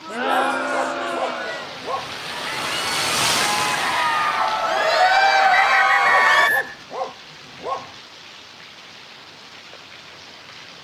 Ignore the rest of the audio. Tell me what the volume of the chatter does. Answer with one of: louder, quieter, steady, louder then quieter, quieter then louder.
quieter then louder.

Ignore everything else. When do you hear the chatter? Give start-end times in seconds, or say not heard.
0.0-6.5.